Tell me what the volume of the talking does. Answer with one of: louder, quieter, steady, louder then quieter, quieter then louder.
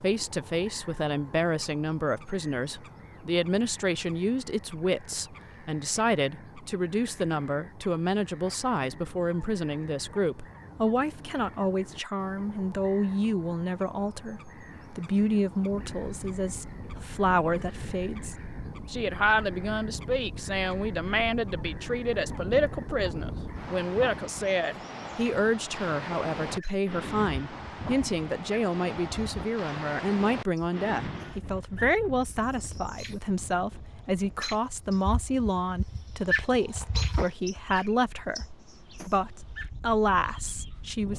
steady.